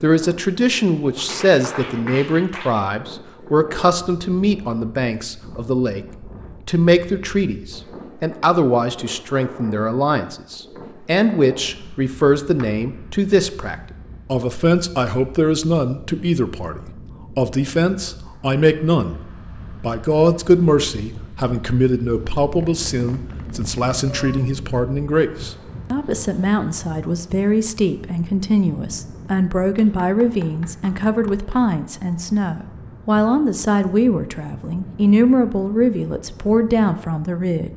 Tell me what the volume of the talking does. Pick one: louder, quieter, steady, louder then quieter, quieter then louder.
steady.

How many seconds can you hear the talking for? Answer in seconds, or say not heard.
38 s.